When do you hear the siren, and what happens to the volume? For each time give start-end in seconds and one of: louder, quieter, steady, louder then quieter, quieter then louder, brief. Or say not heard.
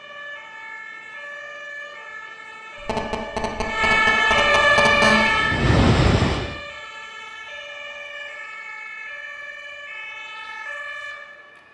0.0-11.6 louder then quieter.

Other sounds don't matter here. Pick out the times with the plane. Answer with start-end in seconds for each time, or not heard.
4.5-6.6.